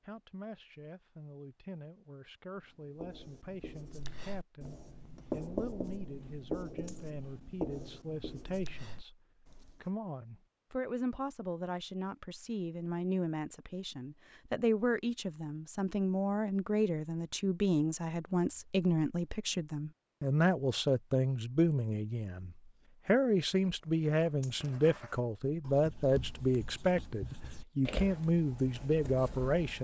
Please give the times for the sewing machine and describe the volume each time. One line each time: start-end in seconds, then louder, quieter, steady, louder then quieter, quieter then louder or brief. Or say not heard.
not heard.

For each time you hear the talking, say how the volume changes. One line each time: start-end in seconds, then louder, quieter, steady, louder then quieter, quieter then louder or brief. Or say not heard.
0.0-29.7 louder.